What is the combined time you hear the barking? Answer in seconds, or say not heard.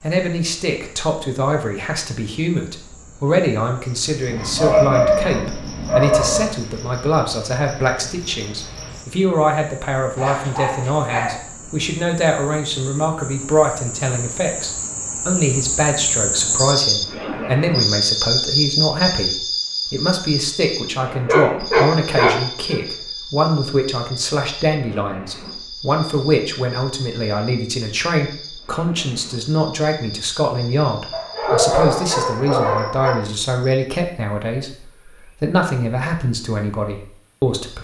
7 s.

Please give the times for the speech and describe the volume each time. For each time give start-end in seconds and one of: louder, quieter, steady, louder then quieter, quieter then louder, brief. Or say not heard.
0.0-37.8 steady.